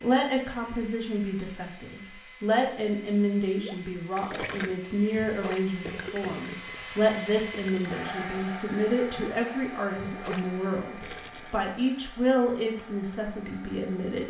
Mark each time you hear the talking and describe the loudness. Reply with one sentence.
The talking can be heard from 0.0 to 14.2 s, at a steady volume.